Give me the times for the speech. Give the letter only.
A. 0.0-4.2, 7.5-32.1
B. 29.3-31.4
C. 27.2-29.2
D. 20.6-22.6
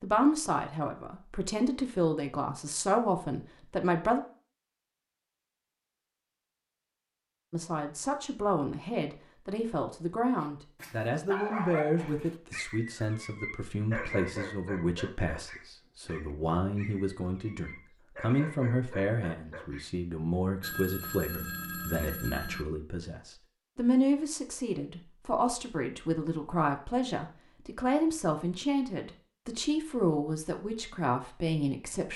A.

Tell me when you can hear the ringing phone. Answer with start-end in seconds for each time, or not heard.
20.6-22.6.